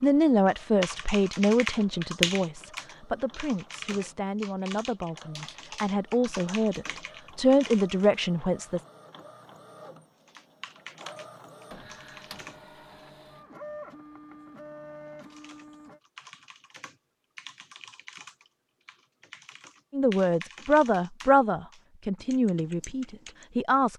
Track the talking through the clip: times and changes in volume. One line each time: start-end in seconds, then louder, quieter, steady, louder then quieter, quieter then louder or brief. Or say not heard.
0.0-8.8 quieter then louder
19.9-23.9 quieter.